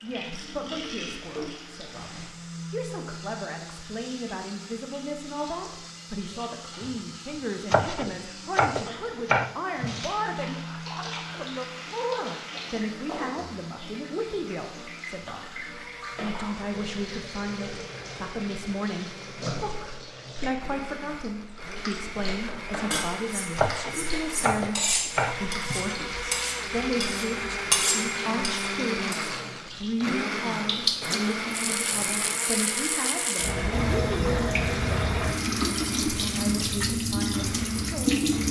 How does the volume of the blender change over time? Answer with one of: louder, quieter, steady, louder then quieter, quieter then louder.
louder.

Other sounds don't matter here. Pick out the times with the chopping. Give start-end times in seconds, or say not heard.
7.7-10.1, 23.6-25.9.